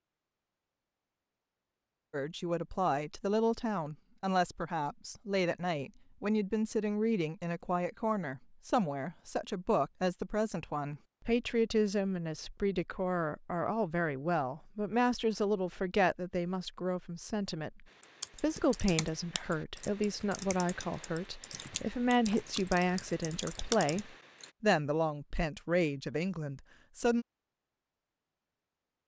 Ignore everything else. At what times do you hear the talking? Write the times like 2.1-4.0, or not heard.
2.1-27.2.